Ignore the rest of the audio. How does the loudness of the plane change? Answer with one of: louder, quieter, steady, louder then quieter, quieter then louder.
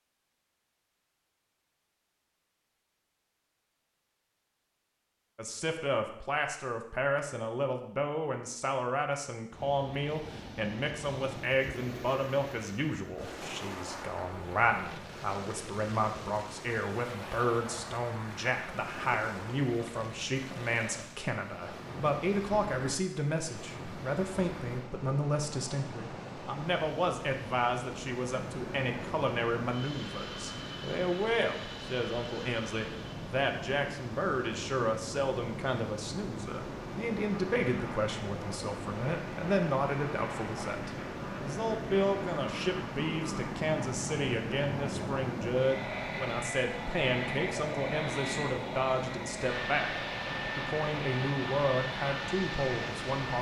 louder.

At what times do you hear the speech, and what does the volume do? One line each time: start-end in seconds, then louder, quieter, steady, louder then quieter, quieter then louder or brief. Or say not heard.
5.3-49.9 steady
50.5-53.3 brief.